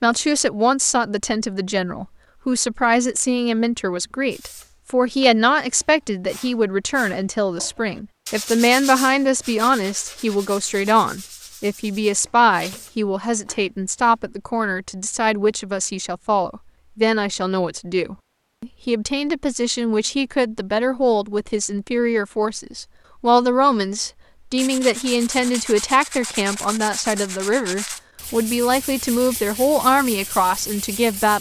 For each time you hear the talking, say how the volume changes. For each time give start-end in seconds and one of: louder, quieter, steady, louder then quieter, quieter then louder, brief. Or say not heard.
0.0-31.3 steady.